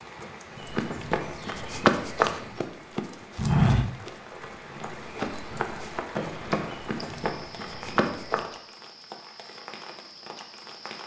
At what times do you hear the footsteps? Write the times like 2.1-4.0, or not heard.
0.5-8.4.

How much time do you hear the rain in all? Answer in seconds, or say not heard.
11 s.